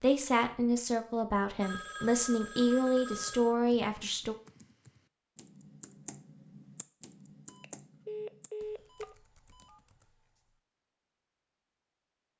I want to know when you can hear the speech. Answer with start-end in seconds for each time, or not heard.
0.0-4.3.